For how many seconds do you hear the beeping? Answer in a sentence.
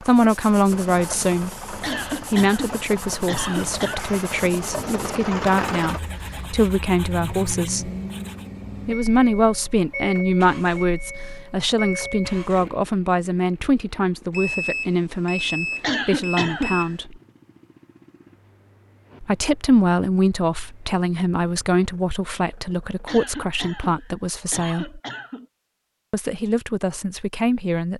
You can hear the beeping for 3 seconds altogether.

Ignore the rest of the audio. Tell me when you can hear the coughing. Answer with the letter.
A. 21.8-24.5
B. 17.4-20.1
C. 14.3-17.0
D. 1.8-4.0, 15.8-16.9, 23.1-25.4
D.